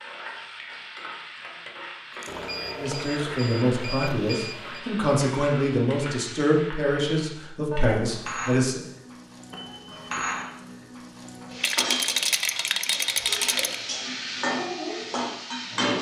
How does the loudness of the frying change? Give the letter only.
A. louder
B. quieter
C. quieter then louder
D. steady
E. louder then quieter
A.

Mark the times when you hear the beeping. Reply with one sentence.
The beeping can be heard from 2.2 to 4.8 s and from 9.5 to 10.6 s.